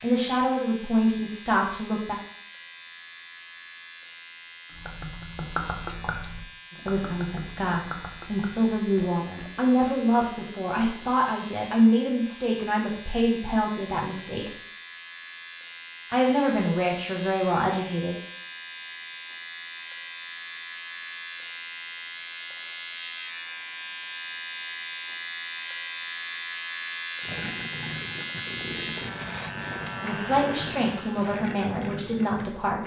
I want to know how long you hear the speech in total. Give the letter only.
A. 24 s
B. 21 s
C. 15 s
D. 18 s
C.